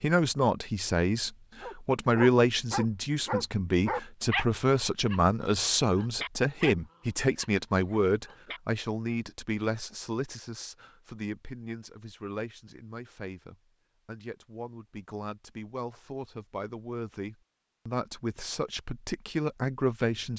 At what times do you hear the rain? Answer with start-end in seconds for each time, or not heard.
not heard.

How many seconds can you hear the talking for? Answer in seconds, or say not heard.
20 s.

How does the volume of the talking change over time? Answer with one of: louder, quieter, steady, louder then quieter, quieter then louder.
quieter then louder.